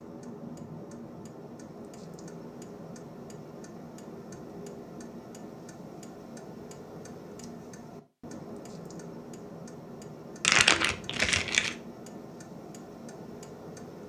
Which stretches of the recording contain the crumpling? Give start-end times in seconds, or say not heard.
10.4-11.8.